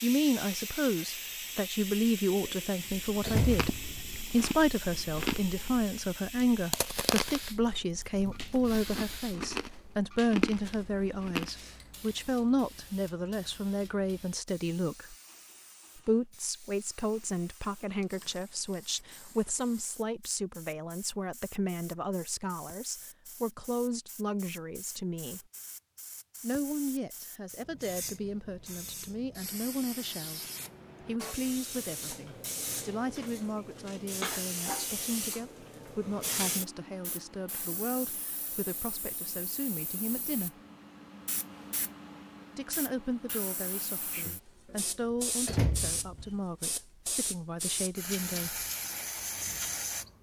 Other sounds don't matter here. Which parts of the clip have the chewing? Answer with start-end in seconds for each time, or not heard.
2.9-11.5.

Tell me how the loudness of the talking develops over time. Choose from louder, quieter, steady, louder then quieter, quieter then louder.
quieter.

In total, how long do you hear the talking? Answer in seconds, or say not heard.
44 s.